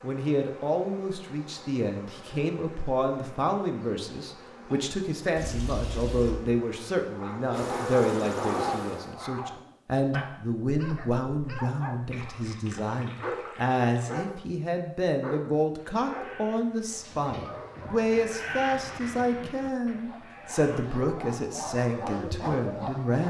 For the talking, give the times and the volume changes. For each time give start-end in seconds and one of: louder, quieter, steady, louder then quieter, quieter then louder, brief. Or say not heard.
0.0-23.2 steady.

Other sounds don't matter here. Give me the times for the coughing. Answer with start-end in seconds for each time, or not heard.
not heard.